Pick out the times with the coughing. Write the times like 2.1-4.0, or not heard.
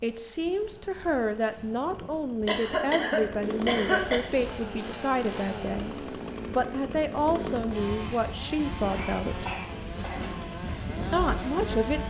2.5-4.2, 8.8-10.4.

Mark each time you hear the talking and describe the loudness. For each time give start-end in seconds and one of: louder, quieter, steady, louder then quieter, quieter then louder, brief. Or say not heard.
0.0-9.4 steady
11.1-12.0 brief.